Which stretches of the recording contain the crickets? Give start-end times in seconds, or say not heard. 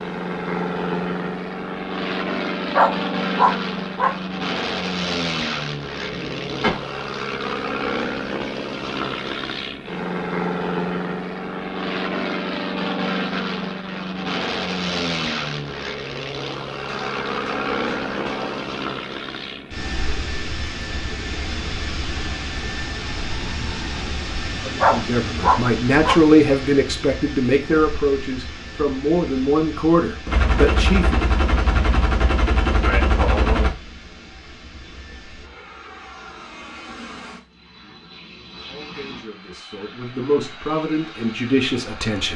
not heard.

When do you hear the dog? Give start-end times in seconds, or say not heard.
2.7-4.2, 24.8-26.2.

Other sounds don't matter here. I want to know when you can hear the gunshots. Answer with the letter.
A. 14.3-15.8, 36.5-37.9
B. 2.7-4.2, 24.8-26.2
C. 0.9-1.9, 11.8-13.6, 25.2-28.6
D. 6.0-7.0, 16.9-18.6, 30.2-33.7
D.